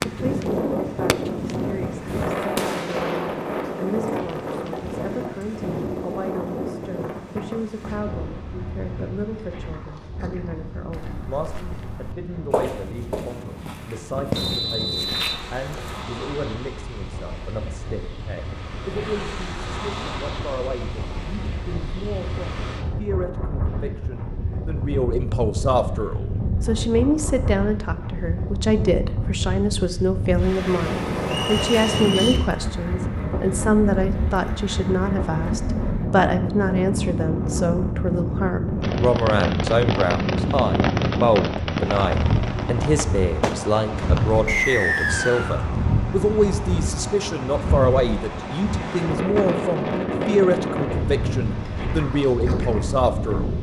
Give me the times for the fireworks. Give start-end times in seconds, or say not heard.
0.0-4.9, 38.8-44.5.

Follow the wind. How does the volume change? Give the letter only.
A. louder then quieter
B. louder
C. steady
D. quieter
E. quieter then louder
E.